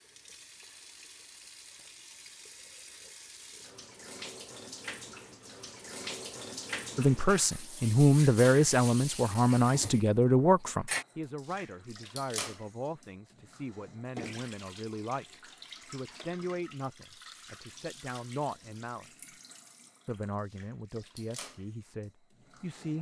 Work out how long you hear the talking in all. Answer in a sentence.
You can hear the talking for 15 seconds altogether.